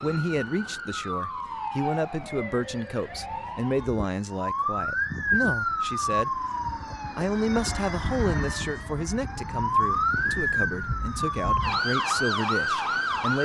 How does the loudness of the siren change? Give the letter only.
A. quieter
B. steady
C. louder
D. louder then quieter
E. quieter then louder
C.